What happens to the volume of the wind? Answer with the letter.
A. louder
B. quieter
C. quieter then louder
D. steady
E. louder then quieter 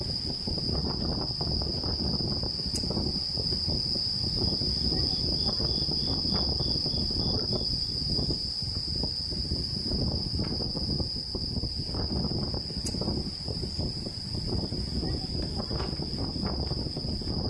D.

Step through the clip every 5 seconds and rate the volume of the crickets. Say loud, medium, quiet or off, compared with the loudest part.
loud, loud, medium, medium.